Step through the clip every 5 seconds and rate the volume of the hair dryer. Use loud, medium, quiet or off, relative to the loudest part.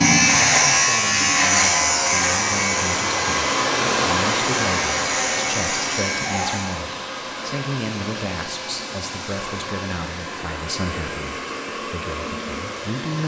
loud, medium, medium.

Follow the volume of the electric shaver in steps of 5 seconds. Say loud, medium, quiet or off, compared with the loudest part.
loud, medium, off.